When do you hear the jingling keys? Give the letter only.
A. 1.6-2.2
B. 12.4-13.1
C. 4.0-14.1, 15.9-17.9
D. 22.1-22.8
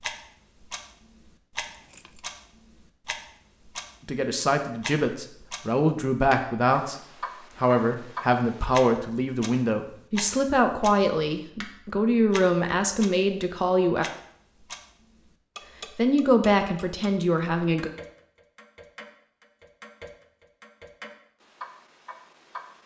A.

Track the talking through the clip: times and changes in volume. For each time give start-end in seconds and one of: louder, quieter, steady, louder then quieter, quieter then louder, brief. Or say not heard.
4.0-14.1 steady
15.9-17.9 brief.